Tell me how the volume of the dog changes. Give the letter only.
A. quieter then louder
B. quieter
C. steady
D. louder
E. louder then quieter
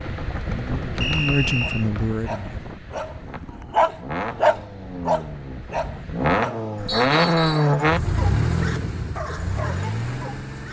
B.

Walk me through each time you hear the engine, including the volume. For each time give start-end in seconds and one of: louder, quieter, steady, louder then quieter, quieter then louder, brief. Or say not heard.
0.0-10.6 louder then quieter.